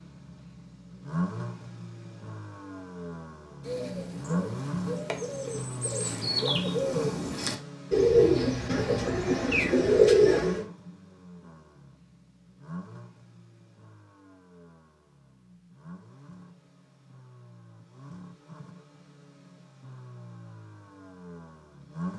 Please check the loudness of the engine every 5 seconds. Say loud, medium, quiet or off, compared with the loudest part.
loud, loud, medium, quiet, medium.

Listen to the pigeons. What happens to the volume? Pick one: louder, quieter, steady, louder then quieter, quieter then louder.
louder.